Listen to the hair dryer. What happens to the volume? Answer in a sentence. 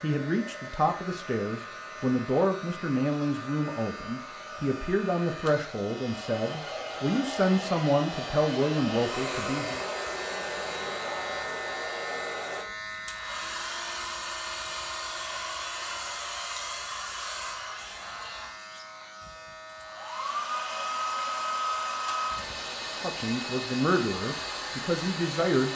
The loudness of the hair dryer goes up.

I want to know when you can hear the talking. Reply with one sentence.
You can hear the talking from 0.0 to 9.8 s and from 23.0 to 25.7 s.